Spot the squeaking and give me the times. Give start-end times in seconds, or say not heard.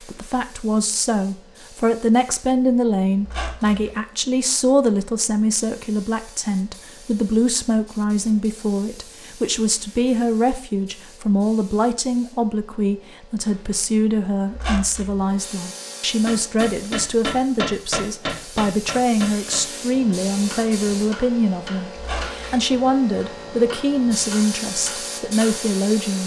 3.2-3.9, 14.5-15.2, 21.9-22.4.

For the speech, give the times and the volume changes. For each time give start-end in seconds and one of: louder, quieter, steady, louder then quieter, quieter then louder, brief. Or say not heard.
0.1-26.2 steady.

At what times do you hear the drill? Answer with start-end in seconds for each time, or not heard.
not heard.